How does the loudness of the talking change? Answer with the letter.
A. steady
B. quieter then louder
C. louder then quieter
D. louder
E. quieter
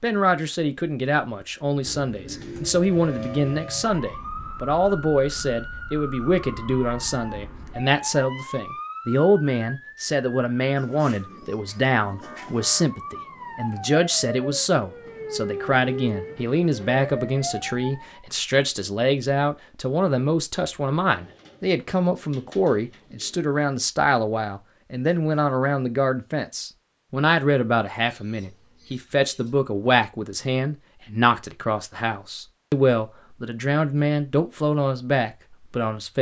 A.